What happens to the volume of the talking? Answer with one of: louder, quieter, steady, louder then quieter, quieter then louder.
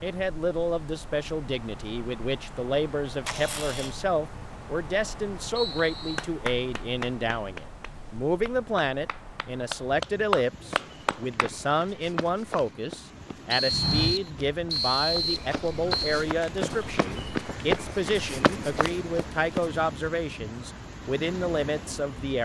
steady.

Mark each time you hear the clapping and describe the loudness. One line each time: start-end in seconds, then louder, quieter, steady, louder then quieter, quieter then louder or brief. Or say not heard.
6.2-11.5 quieter then louder.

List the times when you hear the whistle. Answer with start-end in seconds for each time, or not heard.
5.5-6.2, 13.5-16.2.